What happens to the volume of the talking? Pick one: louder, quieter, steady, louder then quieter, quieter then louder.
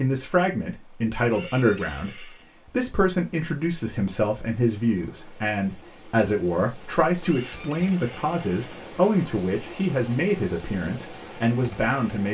steady.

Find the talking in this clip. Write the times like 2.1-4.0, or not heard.
0.0-12.2.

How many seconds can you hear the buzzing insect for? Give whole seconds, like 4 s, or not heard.
not heard.